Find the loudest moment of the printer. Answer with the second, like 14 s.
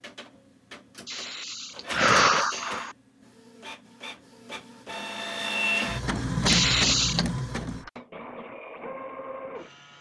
6 s.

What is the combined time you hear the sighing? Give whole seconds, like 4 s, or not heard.
3 s.